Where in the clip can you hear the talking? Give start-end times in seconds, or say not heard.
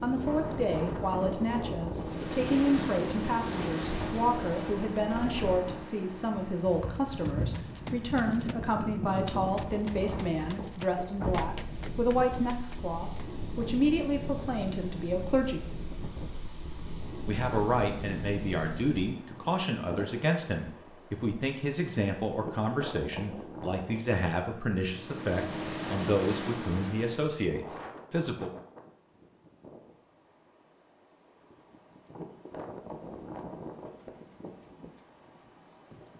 0.0-15.6, 17.2-28.5.